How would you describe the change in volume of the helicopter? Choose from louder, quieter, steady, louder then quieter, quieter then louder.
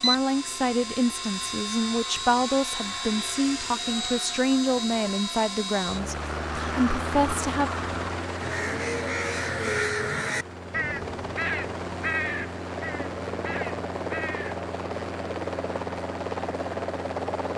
steady.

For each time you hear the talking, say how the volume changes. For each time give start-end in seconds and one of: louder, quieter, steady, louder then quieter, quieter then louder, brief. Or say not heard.
0.0-7.7 steady.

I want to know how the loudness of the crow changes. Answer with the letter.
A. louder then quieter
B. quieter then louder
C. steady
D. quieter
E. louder
A.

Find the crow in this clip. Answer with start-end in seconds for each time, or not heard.
6.4-14.6.